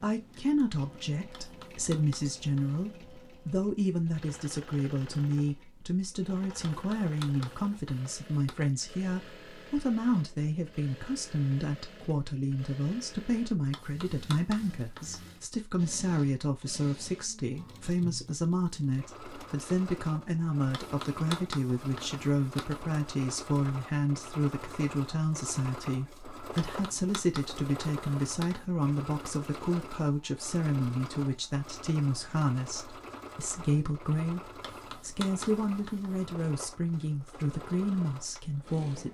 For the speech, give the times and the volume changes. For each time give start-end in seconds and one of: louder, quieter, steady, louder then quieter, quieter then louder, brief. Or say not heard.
0.0-39.0 steady.